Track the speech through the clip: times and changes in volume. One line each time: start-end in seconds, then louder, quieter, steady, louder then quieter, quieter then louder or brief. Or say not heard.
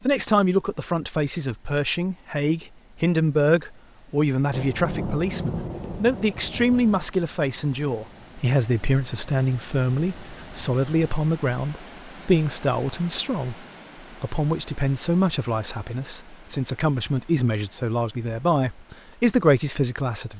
0.0-20.3 steady.